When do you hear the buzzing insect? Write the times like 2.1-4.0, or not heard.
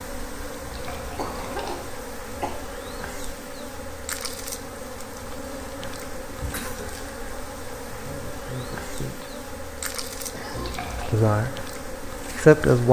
0.0-12.8.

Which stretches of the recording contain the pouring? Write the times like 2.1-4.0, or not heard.
0.6-1.9, 10.5-11.2.